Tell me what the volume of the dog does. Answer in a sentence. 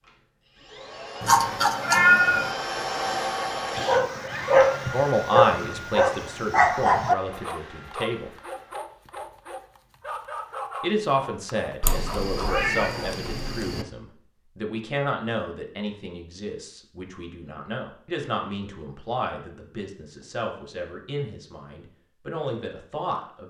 The volume of the dog goes down.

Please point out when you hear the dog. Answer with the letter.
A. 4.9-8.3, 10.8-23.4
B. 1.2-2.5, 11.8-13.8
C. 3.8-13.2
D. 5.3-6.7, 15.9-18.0
C.